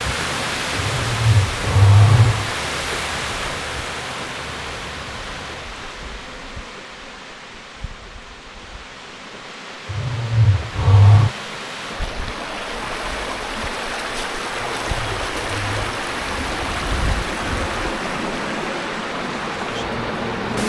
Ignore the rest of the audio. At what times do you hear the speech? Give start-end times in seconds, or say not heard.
not heard.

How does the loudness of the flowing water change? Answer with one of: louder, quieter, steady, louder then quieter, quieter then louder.
quieter then louder.